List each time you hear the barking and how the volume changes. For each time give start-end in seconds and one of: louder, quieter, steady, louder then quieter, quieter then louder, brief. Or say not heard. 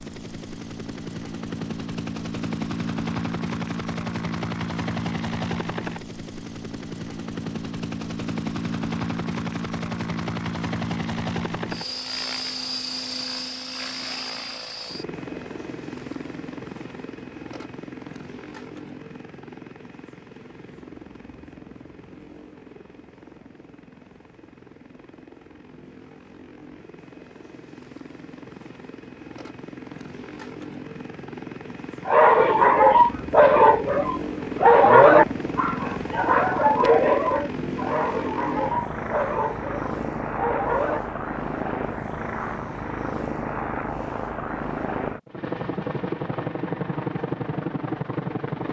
32.0-41.0 quieter.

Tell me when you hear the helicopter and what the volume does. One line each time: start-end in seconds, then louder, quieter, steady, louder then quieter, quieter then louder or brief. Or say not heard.
0.0-48.6 quieter then louder.